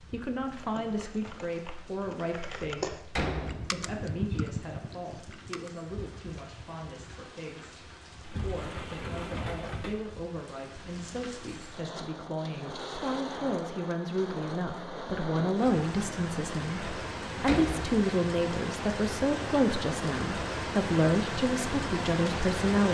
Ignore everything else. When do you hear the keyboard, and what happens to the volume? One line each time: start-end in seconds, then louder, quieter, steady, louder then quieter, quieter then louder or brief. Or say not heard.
0.5-6.0 louder then quieter.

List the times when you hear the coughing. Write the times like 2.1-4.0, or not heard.
not heard.